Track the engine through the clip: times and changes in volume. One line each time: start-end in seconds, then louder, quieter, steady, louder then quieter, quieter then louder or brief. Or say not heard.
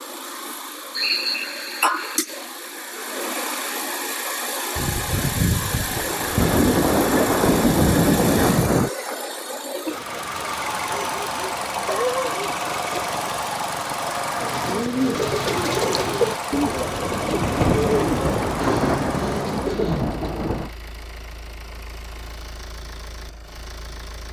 0.0-24.2 quieter.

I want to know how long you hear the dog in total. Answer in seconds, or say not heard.
2 s.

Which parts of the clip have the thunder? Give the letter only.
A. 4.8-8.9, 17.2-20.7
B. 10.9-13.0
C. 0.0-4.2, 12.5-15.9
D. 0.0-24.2
A.